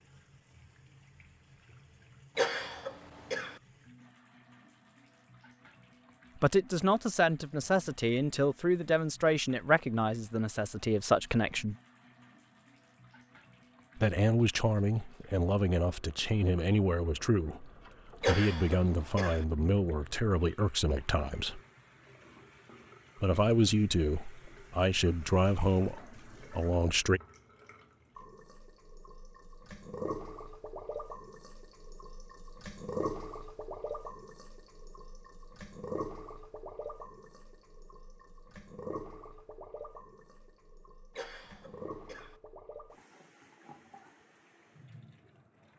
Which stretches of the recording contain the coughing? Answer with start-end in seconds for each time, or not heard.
2.4-3.6, 18.2-19.4, 41.1-42.4.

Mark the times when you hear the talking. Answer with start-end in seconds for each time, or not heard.
6.3-11.8, 13.9-21.6, 23.2-27.2.